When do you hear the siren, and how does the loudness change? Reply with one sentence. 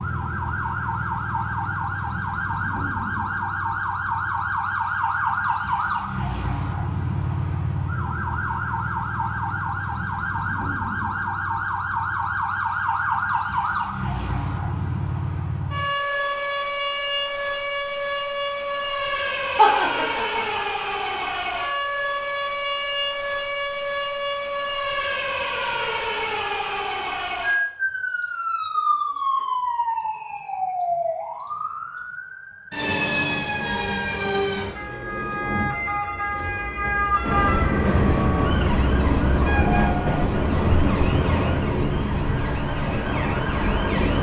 The siren can be heard from 0.0 to 44.1 s, at a steady volume.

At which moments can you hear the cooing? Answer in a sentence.
The cooing can't be heard in this clip.